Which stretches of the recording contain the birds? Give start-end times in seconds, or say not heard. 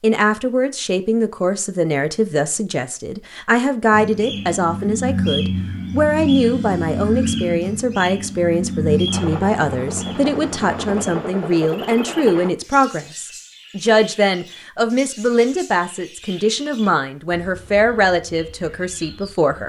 3.9-19.6.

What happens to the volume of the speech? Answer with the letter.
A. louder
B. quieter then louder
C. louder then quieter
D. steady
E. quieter
D.